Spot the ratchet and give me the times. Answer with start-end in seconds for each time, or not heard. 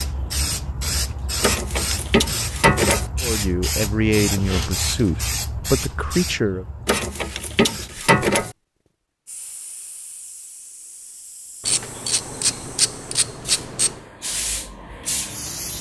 1.4-3.1, 6.8-8.6, 11.7-14.0.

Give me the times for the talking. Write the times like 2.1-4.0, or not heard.
3.2-6.7.